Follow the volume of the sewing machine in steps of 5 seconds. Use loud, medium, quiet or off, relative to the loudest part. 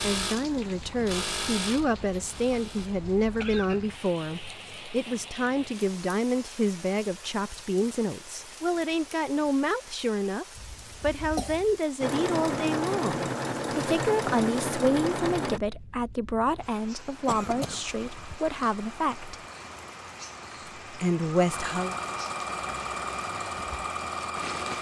medium, off, loud, medium, medium.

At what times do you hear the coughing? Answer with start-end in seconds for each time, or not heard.
3.4-4.0, 10.6-11.8, 17.2-17.9.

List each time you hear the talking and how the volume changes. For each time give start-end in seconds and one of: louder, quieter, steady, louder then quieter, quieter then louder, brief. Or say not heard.
0.0-19.4 steady
20.9-21.9 brief.